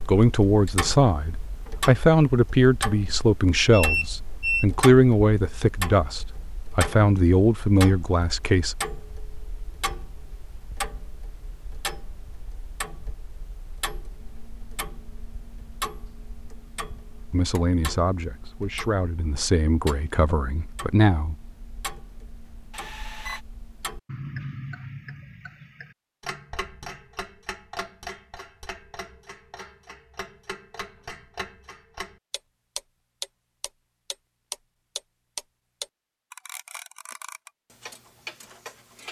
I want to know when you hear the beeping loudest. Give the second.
4 s.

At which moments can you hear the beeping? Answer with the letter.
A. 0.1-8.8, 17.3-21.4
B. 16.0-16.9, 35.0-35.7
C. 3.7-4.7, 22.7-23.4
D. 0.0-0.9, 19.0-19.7
C.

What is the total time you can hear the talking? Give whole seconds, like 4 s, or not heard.
13 s.